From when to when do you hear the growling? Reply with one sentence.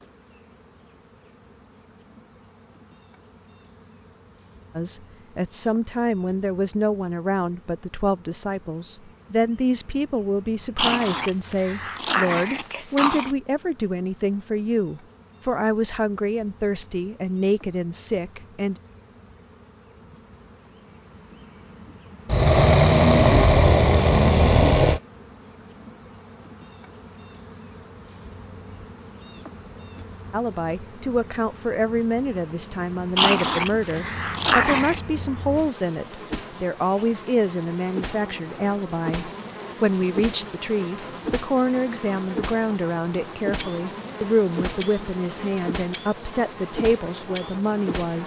The growling can be heard from 10.8 to 13.3 s, from 22.2 to 25.0 s and from 33.1 to 35.0 s.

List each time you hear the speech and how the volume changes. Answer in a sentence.
The speech can be heard from 4.8 to 18.8 s, at a steady volume; and from 30.3 to 48.2 s, at a steady volume.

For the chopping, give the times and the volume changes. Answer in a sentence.
The chopping can't be heard in this clip.